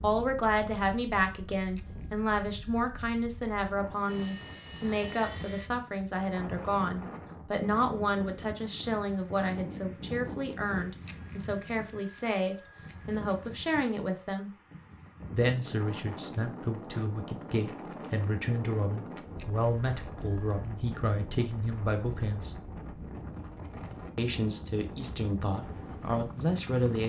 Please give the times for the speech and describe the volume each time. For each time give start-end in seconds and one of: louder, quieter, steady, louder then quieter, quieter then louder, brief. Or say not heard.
0.0-14.5 steady
15.3-22.6 steady
24.1-27.0 brief.